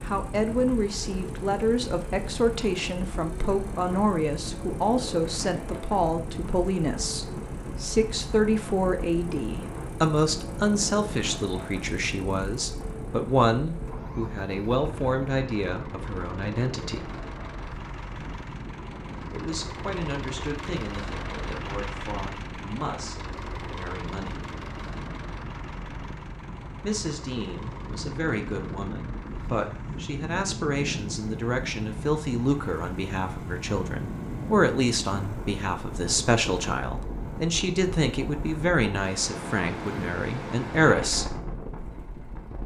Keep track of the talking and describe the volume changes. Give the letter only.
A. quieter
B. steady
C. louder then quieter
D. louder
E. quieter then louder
E.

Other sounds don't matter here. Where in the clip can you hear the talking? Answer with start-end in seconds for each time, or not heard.
0.1-17.1, 19.3-24.4, 26.8-41.2.